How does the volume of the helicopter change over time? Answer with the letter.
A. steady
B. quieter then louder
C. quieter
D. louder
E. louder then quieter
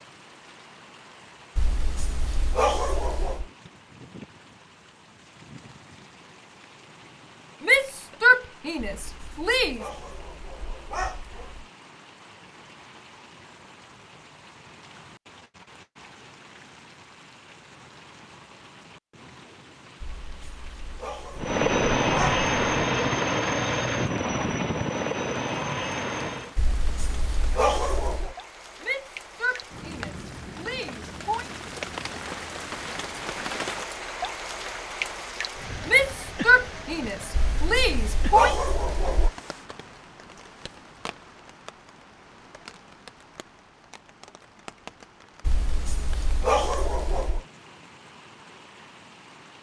C.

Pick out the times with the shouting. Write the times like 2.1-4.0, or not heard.
7.6-9.8, 28.8-31.5, 35.9-38.5.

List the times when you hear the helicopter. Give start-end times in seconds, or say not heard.
21.4-26.6.